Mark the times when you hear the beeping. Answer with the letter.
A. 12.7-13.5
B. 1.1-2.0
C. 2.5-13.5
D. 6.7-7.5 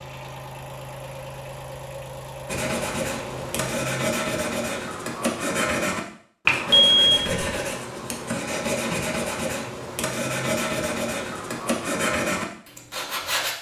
D.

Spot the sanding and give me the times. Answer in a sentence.
The sanding can be heard from 2.5 to 13.5 s.